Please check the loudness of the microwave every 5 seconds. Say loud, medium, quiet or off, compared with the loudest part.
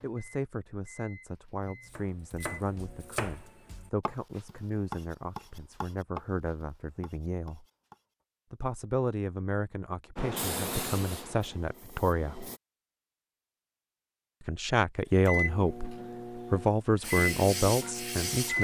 quiet, off, off, loud.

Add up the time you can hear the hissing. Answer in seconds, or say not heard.
4 s.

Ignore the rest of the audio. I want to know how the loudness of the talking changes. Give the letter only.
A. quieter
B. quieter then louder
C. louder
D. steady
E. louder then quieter
C.